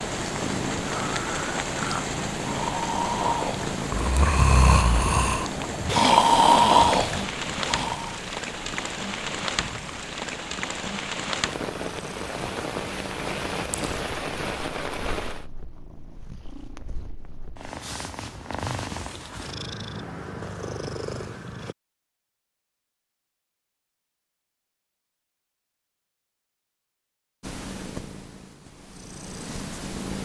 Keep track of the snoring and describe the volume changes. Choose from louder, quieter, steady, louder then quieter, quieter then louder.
louder.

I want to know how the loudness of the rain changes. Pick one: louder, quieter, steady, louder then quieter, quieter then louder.
steady.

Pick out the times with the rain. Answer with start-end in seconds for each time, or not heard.
0.0-15.4.